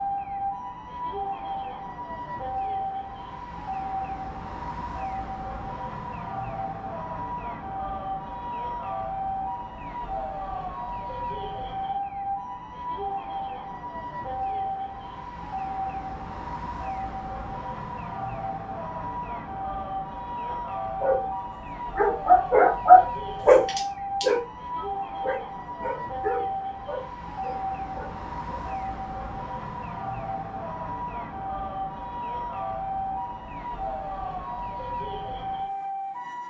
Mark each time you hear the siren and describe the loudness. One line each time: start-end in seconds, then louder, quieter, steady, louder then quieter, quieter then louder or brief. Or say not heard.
0.0-36.4 steady.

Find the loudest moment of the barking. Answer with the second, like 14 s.
23 s.